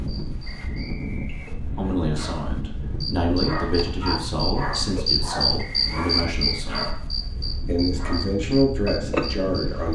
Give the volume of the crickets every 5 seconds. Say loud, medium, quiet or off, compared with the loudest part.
medium, loud.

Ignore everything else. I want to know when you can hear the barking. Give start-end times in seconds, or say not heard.
2.0-8.4.